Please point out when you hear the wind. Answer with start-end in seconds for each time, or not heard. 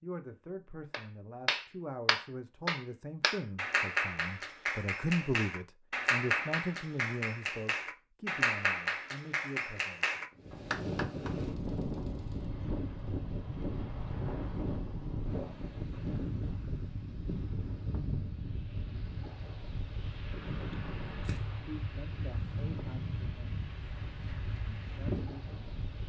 10.3-26.0.